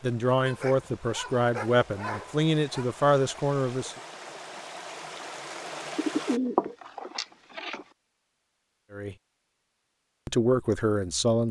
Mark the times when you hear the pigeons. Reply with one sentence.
You can hear the pigeons from 6.0 to 7.8 s.